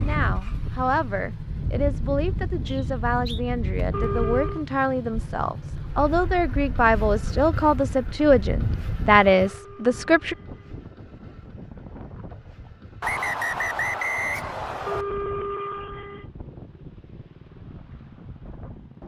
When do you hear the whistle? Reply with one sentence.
You can hear the whistle from 2.6 to 3.4 s and from 13.0 to 15.1 s.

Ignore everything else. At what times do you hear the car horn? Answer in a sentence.
You can hear the car horn from 3.9 to 4.7 s, from 9.4 to 10.8 s and from 14.8 to 16.2 s.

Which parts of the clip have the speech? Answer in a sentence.
The speech can be heard from 0.0 to 10.3 s.